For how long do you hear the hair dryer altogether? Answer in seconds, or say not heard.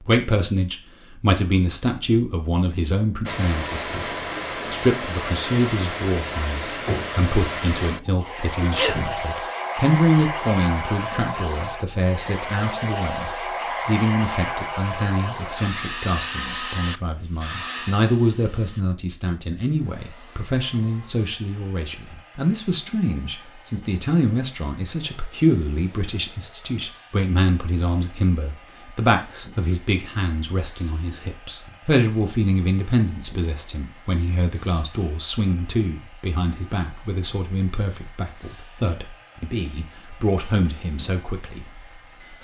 39 s.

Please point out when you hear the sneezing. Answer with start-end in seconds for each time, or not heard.
8.6-9.2.